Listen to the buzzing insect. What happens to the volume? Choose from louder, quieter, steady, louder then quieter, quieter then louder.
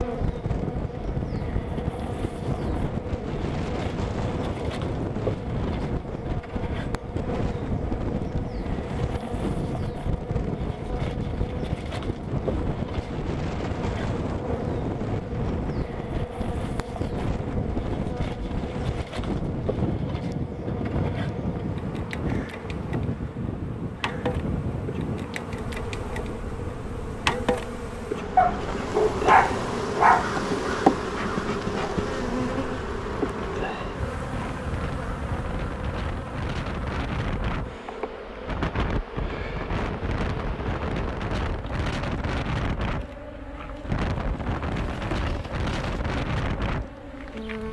louder then quieter.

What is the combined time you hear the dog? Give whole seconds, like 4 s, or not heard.
2 s.